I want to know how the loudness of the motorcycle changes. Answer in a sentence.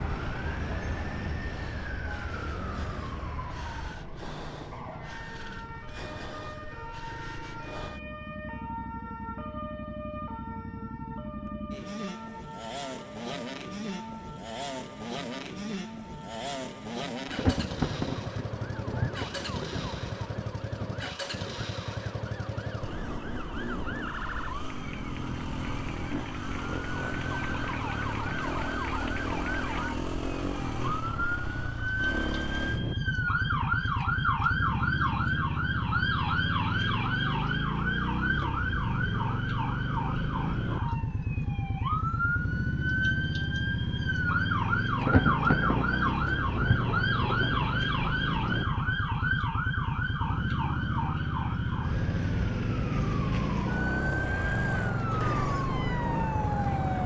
The loudness of the motorcycle goes up.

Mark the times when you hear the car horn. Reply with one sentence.
The car horn can't be heard in this clip.